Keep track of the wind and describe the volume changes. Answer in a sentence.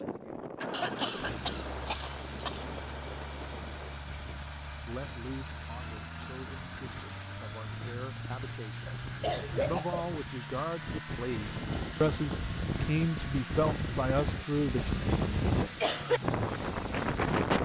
The volume of the wind goes down, then up.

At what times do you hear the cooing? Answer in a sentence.
You can't hear the cooing here.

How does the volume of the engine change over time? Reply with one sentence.
The loudness of the engine stays about the same.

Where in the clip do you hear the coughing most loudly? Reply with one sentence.
The loudest moment of the coughing is at 16 seconds.